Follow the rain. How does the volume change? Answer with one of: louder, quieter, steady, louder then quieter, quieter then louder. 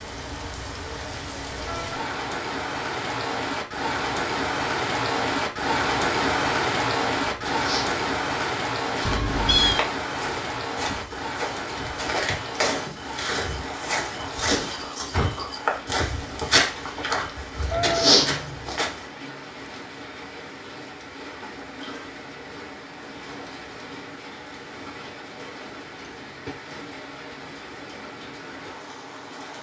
quieter.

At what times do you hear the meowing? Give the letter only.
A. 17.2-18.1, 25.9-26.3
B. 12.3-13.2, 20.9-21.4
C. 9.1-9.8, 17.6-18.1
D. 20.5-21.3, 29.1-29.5
C.